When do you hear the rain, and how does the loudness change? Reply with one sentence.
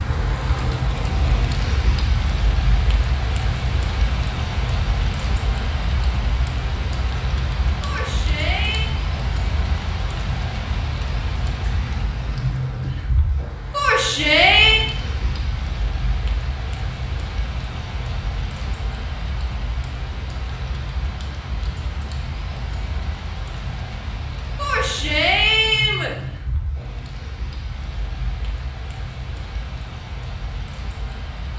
You can hear the rain from 0.0 to 31.5 s, getting quieter.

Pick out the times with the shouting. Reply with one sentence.
The shouting can be heard from 7.8 to 8.9 s, from 13.7 to 14.8 s and from 24.6 to 26.1 s.